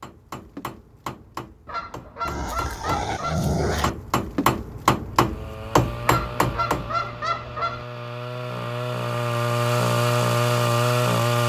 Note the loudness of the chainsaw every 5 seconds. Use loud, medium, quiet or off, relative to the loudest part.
off, medium, loud.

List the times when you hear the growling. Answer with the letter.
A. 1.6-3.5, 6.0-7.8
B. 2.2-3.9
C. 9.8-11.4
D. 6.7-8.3
B.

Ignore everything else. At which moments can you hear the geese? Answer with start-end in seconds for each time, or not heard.
1.6-3.5, 6.0-7.8.